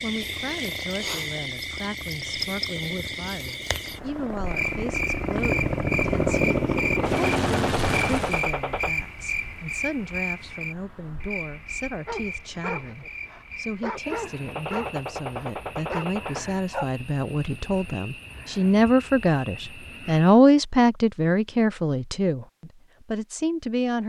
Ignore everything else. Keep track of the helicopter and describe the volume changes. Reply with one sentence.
The loudness of the helicopter goes up.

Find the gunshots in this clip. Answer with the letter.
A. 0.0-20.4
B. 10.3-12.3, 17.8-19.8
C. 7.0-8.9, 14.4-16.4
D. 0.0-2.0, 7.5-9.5
C.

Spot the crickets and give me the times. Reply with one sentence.
You can hear the crickets from 0.0 to 20.4 s.